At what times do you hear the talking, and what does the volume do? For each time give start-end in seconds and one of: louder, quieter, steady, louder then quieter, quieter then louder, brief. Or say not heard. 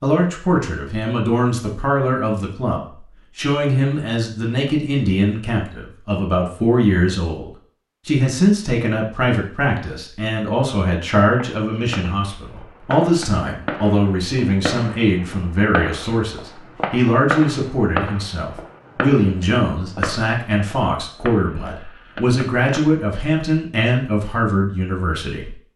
0.0-25.6 steady.